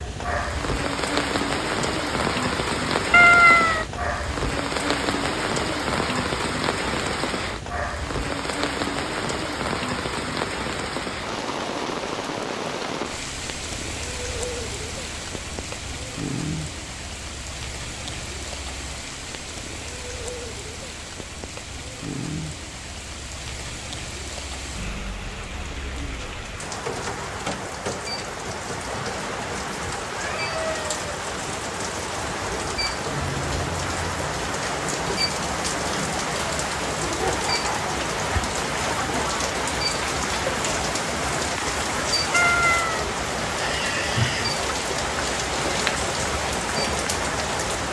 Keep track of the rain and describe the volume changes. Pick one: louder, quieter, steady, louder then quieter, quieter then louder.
quieter then louder.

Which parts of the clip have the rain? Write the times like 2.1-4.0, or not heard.
0.0-47.8.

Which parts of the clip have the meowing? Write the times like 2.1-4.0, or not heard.
3.1-3.9, 42.3-43.0.